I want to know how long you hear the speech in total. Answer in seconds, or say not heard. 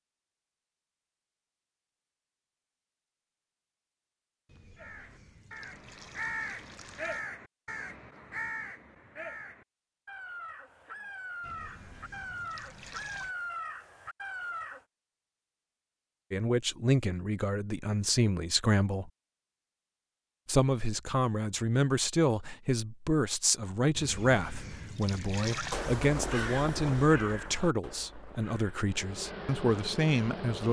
13 s.